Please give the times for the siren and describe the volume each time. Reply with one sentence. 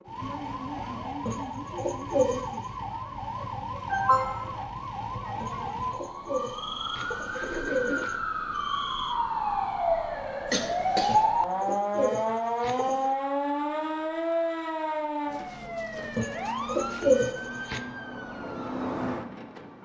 You can hear the siren from 0.0 to 19.8 s, getting louder then quieter.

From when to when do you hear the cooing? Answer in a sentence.
You can hear the cooing from 1.2 to 2.4 s, from 5.4 to 8.2 s, from 11.1 to 13.2 s and from 16.1 to 17.8 s.